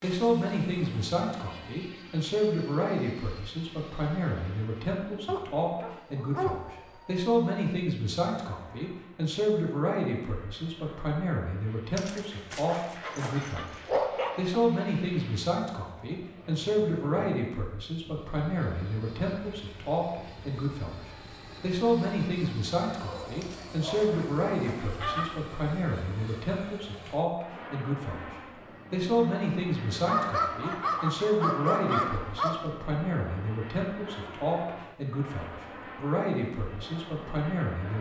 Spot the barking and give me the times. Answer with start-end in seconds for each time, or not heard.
5.2-6.6, 13.0-14.6, 23.1-24.1, 30.1-32.6.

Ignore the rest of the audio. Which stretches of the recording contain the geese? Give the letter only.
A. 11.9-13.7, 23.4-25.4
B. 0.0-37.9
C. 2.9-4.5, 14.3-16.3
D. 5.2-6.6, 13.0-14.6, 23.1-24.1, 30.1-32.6
A.